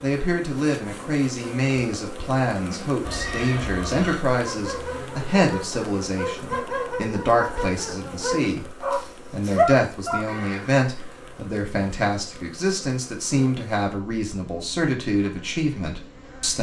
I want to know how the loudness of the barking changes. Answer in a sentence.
The loudness of the barking goes up.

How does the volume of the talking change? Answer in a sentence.
The volume of the talking stays about the same.